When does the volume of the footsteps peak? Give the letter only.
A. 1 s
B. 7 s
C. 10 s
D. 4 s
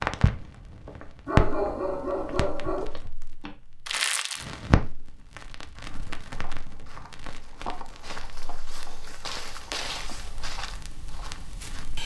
C.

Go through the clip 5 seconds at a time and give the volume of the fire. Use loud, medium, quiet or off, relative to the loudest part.
loud, quiet, quiet.